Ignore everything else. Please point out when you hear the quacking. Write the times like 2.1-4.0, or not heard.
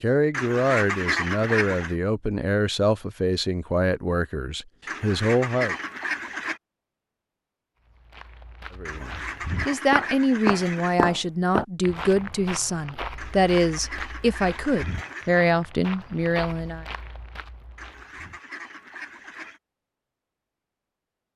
0.3-1.9, 4.8-6.6, 8.8-10.9, 13.2-15.4, 17.8-19.6.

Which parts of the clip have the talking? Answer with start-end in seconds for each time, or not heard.
0.0-5.8, 8.8-16.9.